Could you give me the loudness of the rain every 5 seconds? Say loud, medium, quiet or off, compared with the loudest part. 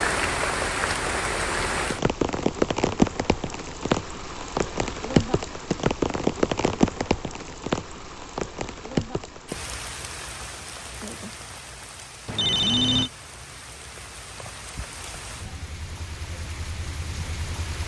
loud, loud, quiet, quiet.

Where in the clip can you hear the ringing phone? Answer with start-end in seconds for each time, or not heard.
12.2-13.1.